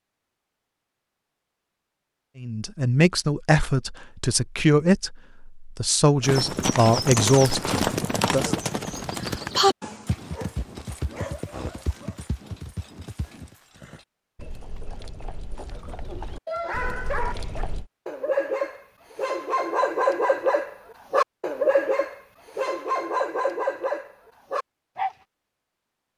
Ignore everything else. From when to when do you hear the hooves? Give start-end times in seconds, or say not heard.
6.2-17.9.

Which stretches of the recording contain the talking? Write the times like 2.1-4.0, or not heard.
2.4-8.6.